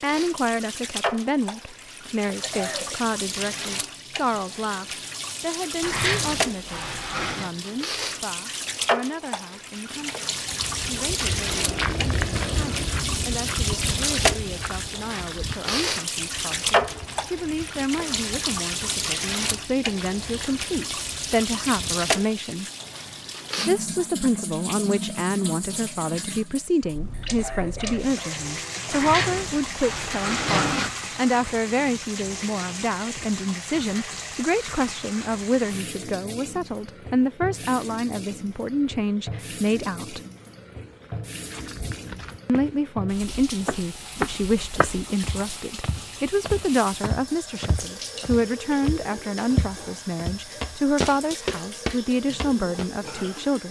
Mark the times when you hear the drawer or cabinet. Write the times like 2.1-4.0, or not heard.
5.8-7.5, 28.9-30.9.